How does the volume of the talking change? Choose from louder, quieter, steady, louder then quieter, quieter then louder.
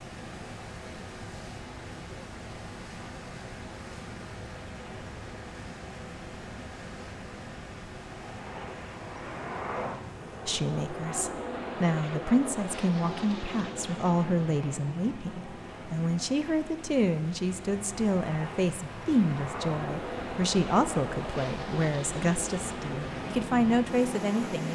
steady.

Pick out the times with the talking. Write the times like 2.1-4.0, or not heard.
10.4-24.7.